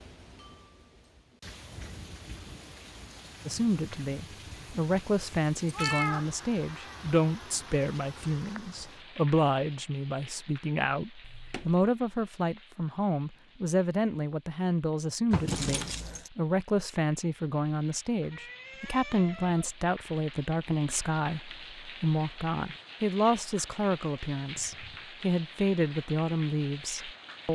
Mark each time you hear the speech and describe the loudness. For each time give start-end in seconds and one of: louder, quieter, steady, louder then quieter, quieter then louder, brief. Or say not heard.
3.5-27.4 steady.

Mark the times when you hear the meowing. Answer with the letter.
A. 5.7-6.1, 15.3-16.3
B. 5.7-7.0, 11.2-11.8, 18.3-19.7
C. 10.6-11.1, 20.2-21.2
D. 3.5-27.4
B.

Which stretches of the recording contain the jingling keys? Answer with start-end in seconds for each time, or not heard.
5.7-6.1, 15.3-16.3.